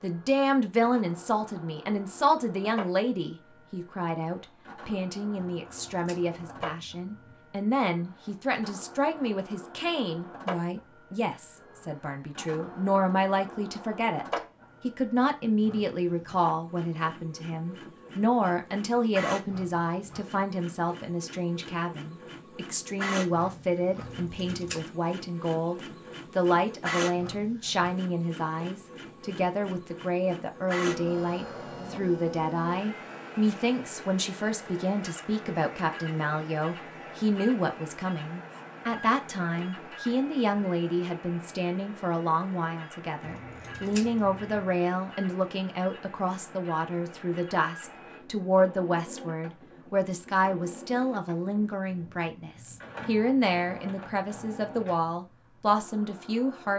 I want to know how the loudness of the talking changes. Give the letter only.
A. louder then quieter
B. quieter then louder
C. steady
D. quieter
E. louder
C.